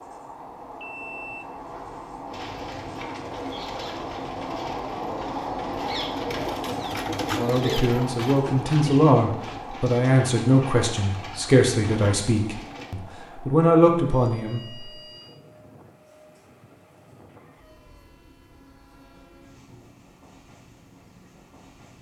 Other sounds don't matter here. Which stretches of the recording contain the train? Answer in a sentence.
The train can be heard from 0.0 to 21.9 s.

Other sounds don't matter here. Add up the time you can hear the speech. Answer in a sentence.
You can hear the speech for 7 seconds altogether.